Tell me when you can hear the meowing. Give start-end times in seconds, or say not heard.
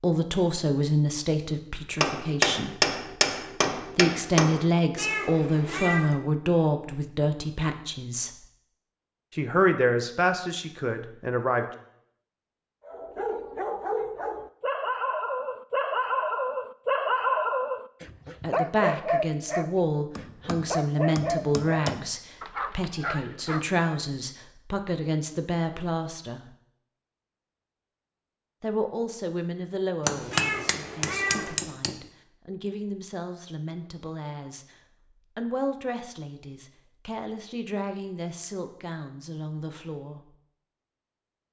5.0-6.2, 30.3-31.6.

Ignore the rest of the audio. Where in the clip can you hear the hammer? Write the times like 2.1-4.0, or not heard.
2.0-4.7, 20.1-22.1, 30.1-31.9.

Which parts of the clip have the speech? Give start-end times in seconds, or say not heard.
0.0-2.9, 3.8-8.3, 9.3-11.7, 18.4-26.6, 28.6-34.6, 35.4-40.4.